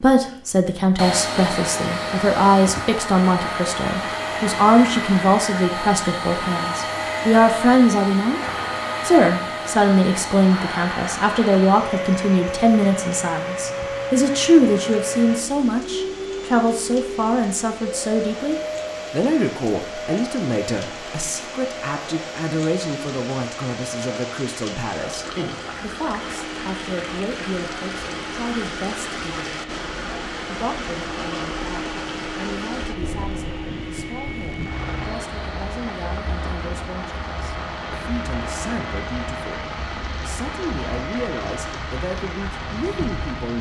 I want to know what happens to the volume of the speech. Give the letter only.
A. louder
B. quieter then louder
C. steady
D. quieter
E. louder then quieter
D.